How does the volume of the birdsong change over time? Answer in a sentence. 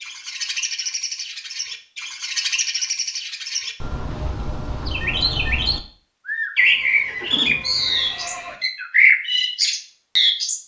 The loudness of the birdsong goes up.